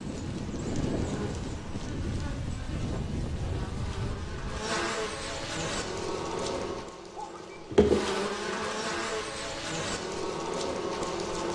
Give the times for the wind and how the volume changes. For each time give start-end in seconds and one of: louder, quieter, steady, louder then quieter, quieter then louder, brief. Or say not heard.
0.0-7.6 quieter.